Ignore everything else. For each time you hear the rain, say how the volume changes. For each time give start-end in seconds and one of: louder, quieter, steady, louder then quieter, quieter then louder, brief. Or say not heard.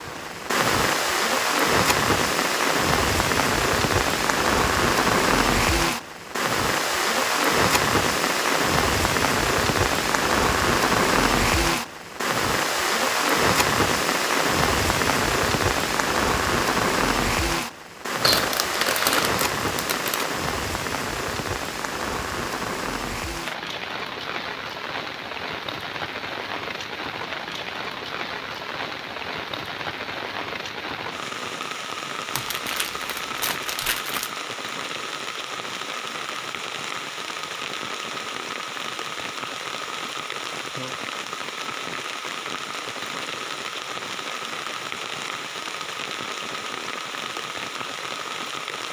0.0-48.8 quieter.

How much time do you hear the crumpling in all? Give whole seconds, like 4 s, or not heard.
4 s.